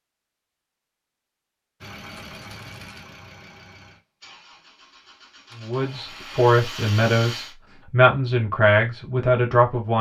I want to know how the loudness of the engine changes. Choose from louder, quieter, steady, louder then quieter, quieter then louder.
quieter.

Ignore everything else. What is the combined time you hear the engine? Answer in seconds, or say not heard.
4 s.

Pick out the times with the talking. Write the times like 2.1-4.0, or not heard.
5.5-9.9.